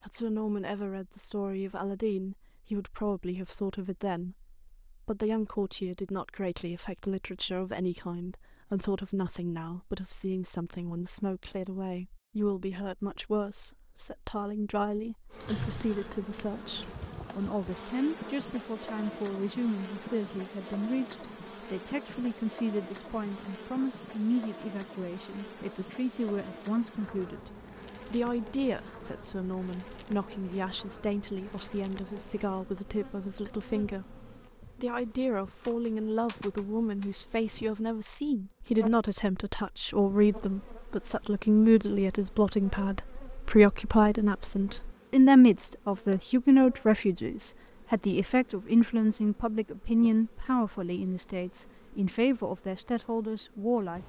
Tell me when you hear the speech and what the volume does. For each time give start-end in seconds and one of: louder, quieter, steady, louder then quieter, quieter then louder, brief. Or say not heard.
0.0-54.0 louder.